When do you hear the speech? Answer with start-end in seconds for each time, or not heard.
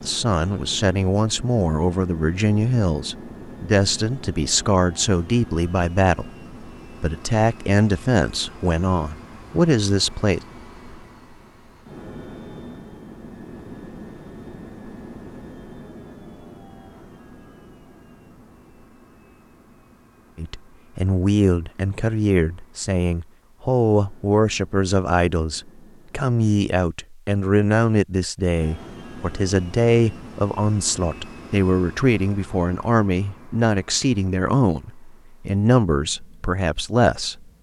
0.0-6.3, 7.0-10.4, 20.4-37.5.